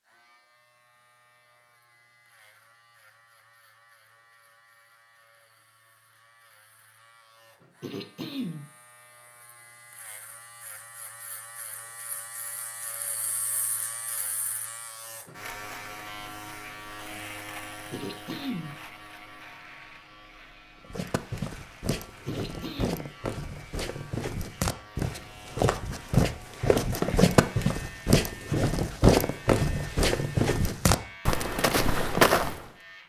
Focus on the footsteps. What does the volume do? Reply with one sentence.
The volume of the footsteps goes up.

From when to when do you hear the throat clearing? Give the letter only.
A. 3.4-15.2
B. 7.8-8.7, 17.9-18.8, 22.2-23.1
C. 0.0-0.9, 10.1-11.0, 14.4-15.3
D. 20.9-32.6
B.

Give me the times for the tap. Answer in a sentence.
The tap can't be heard in this clip.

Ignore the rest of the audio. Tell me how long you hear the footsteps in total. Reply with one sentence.
You can hear the footsteps for 12 seconds altogether.